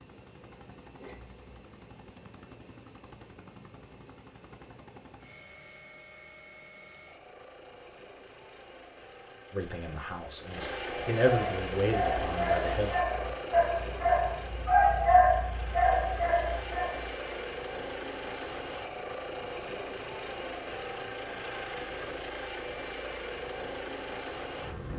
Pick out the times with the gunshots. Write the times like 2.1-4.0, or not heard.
not heard.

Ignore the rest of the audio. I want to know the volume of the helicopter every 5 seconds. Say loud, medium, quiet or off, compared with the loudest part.
quiet, quiet, loud, loud, loud.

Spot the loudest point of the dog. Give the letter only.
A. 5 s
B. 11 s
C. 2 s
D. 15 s
D.